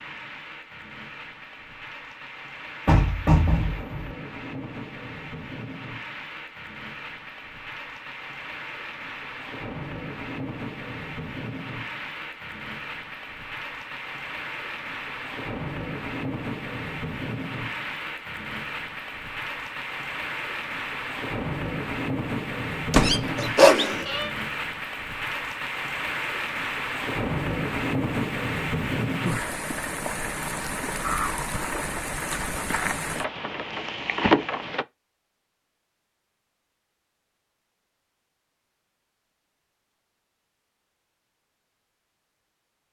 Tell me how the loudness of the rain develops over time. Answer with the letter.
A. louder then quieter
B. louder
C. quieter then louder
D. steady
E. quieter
B.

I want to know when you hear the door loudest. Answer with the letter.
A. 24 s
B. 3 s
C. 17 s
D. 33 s
B.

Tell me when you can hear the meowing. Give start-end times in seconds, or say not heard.
22.9-24.3.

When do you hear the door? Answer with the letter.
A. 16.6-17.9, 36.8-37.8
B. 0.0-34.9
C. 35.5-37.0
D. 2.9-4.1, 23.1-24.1
D.